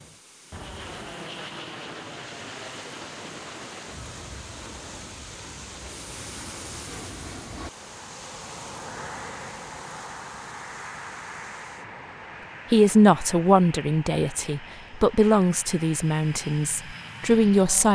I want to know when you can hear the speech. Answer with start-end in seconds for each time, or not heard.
12.7-17.9.